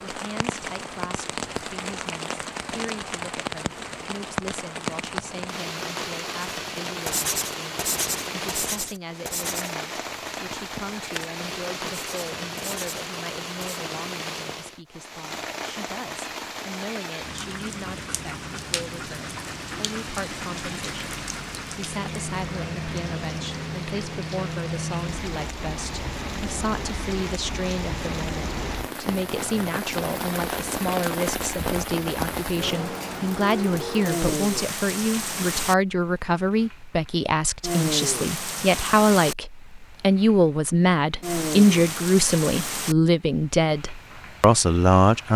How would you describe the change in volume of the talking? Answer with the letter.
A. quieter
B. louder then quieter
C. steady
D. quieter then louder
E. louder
E.